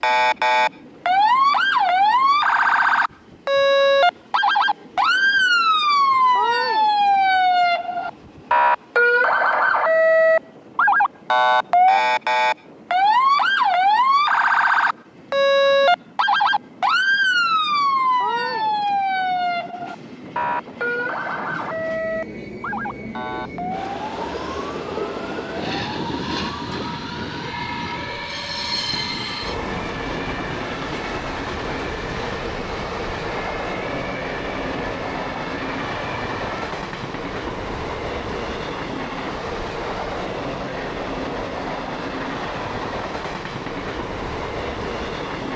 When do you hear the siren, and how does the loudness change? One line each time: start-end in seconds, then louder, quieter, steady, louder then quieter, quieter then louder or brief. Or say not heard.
0.0-36.8 quieter.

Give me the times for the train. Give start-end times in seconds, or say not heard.
0.0-45.5.